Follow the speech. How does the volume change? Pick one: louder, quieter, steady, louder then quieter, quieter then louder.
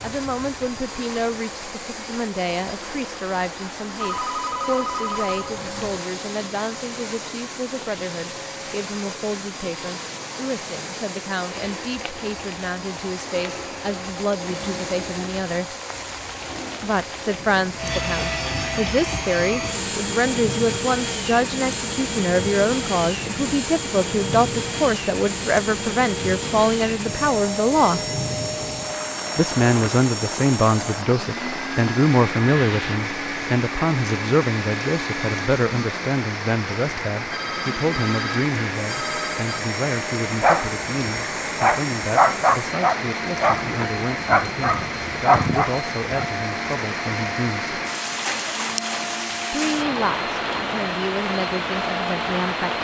louder then quieter.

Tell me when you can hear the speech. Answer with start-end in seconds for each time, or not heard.
0.0-15.8, 16.8-28.0, 29.4-47.7, 49.5-52.7.